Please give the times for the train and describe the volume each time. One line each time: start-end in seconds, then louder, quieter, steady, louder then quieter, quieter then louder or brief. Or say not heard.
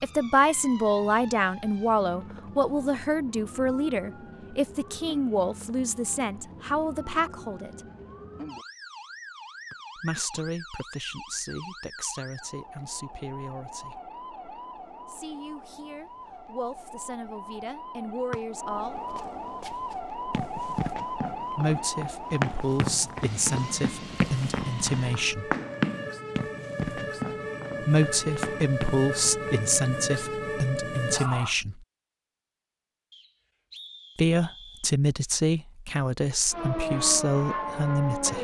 not heard.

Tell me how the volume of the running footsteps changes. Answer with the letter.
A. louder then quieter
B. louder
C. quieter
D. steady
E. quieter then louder
A.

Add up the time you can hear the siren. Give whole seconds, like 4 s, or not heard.
33 s.